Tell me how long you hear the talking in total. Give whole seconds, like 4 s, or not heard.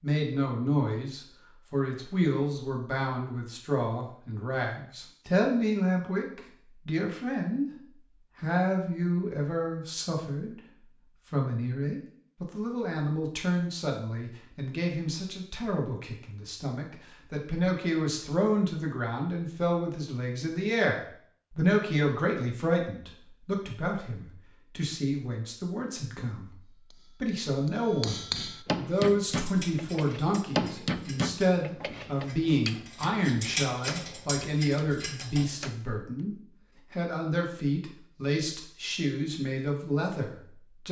39 s.